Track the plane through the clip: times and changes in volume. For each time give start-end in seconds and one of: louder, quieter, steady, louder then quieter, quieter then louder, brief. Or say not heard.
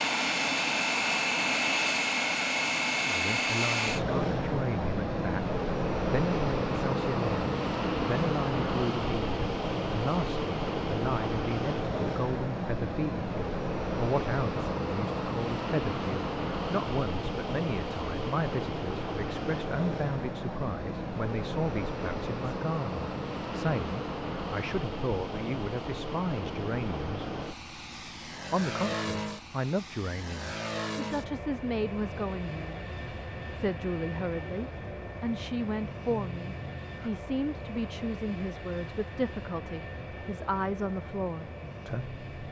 0.0-42.4 quieter.